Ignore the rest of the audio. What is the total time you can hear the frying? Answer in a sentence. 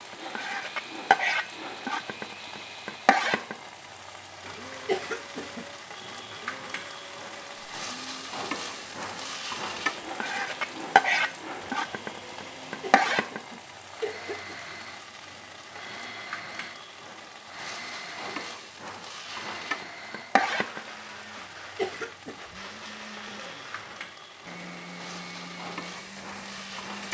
The frying can be heard for 27 seconds in total.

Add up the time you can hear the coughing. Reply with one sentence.
You can hear the coughing for 4 seconds altogether.